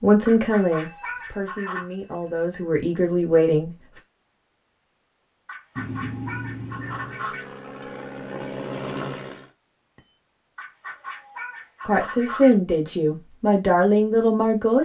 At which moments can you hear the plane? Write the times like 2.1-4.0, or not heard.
6.7-9.5.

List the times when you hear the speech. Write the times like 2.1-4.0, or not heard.
0.0-3.8, 11.8-14.7.